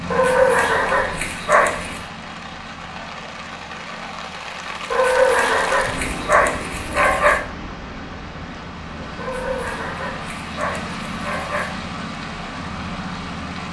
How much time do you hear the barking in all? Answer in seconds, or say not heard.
7 s.